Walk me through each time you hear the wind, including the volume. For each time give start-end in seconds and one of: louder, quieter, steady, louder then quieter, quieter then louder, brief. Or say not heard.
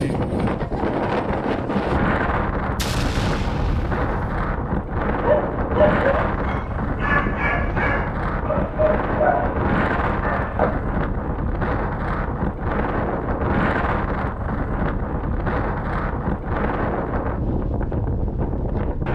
0.0-19.0 steady.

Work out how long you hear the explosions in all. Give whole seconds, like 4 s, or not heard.
2 s.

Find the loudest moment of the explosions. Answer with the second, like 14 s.
3 s.